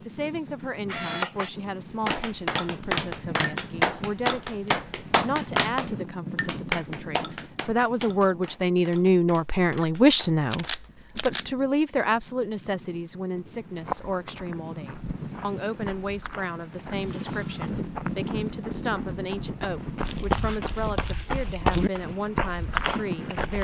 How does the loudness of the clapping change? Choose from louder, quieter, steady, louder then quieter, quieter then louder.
quieter.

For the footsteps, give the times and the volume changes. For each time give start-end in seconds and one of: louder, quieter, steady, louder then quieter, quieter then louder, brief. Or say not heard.
13.7-23.5 louder.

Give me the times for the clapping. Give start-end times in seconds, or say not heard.
2.0-10.9.